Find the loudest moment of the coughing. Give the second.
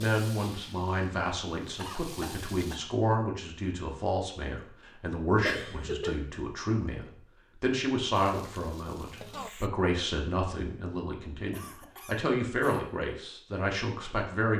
6 s.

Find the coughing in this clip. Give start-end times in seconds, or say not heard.
1.8-2.8, 5.4-6.2, 11.5-12.8.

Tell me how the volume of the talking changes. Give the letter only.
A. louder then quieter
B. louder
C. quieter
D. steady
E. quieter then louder
D.